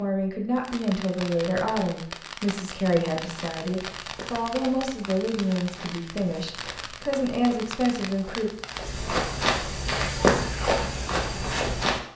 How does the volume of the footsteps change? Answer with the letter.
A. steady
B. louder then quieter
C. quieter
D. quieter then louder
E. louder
E.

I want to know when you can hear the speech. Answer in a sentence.
You can hear the speech from 0.0 to 8.5 s.